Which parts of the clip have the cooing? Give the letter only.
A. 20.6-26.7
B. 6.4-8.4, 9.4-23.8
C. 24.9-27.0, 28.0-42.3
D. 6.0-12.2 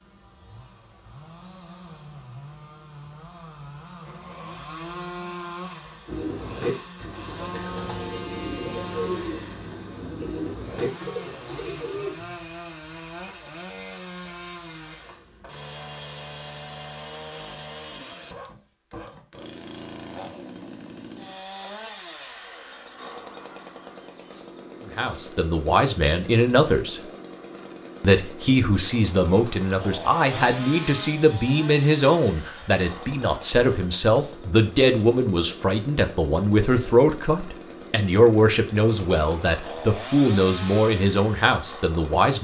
D.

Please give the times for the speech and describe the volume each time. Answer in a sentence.
You can hear the speech briefly from 24.9 to 27.0 s; and from 28.0 to 42.3 s, at a steady volume.